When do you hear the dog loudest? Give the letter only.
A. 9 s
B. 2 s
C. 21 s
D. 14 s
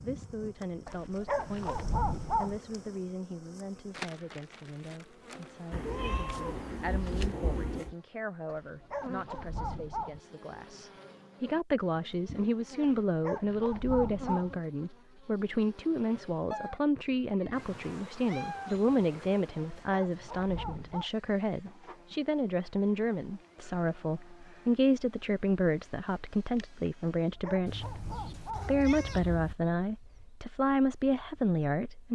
B.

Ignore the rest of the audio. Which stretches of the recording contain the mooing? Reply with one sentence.
You can't hear the mooing here.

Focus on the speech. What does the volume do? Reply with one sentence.
The loudness of the speech goes up.